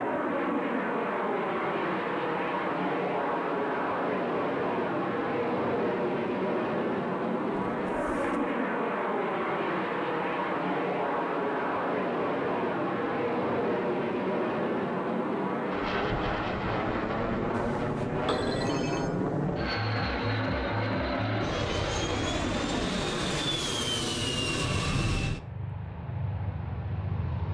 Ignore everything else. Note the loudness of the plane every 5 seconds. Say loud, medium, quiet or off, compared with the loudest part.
loud, loud, loud, loud, loud, medium.